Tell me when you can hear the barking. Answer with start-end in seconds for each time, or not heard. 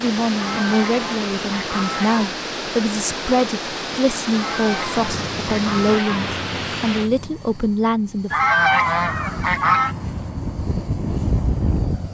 not heard.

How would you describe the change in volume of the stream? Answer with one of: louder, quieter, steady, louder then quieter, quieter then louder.
steady.